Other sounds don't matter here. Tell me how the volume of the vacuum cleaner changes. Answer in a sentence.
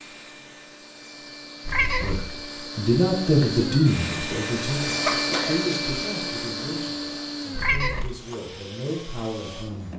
The loudness of the vacuum cleaner goes up, then down.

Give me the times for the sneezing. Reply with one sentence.
The sneezing can be heard from 5.0 to 5.8 s.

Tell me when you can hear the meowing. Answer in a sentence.
The meowing can be heard from 1.6 to 2.3 s and from 7.5 to 8.2 s.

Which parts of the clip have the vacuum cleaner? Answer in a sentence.
The vacuum cleaner can be heard from 0.0 to 9.9 s.